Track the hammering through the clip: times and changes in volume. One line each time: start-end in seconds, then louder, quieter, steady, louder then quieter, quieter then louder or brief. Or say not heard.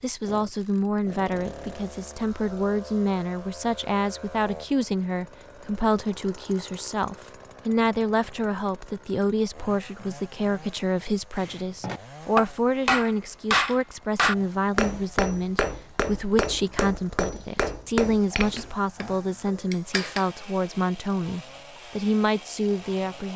11.3-20.3 quieter.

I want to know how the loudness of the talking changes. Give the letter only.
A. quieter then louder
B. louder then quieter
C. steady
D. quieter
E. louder
C.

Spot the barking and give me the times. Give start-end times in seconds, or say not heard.
not heard.